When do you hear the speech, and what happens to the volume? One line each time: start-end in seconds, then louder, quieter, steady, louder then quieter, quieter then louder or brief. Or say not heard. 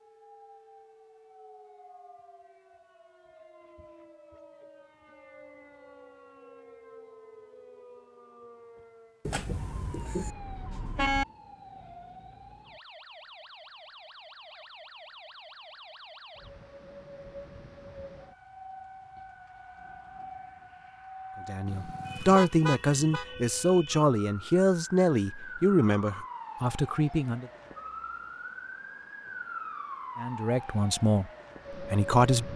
21.4-27.5 quieter
30.1-32.5 brief.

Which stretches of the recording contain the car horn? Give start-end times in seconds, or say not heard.
9.2-11.2, 21.6-23.2.